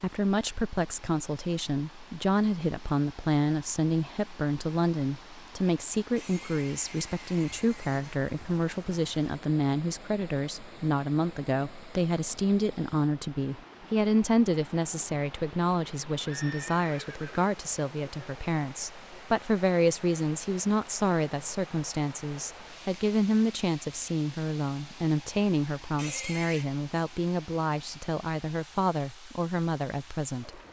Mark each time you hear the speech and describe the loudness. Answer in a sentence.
You can hear the speech from 0.0 to 30.6 s, at a steady volume.